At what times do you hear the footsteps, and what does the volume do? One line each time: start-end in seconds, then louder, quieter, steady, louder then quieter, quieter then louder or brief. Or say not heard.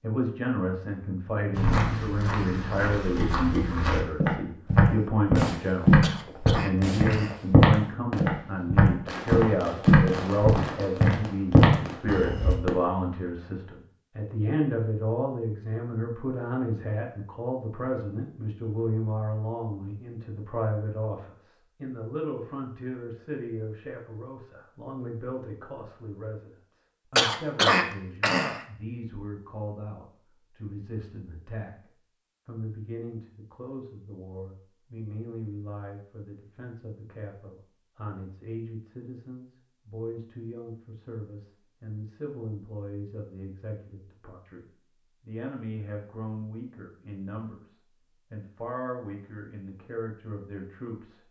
1.6-12.6 louder.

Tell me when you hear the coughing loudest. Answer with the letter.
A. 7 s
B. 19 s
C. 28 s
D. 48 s
C.